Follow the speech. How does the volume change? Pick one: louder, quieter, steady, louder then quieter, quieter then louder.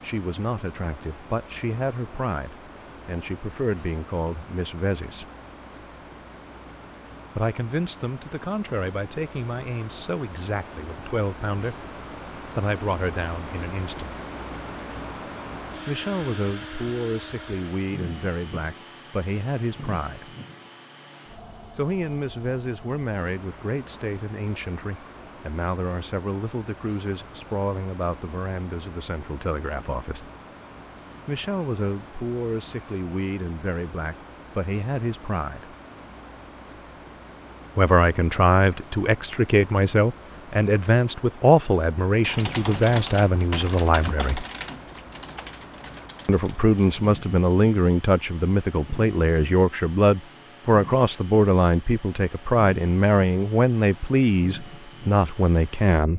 louder.